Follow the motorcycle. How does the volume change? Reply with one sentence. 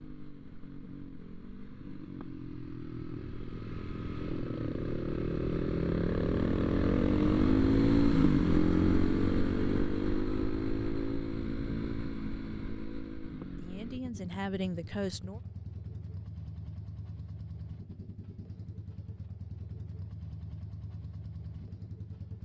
The volume of the motorcycle goes up, then down.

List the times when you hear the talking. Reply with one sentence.
You can hear the talking from 13.6 to 15.4 s.